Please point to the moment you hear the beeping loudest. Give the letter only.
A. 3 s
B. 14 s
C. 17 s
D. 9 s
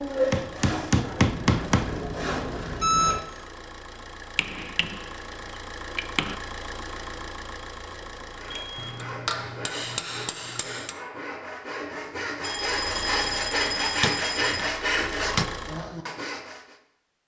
A.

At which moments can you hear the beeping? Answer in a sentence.
The beeping can be heard from 1.2 to 3.2 s, from 8.5 to 8.9 s and from 12.4 to 14.7 s.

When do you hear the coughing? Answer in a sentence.
The coughing can't be heard in this clip.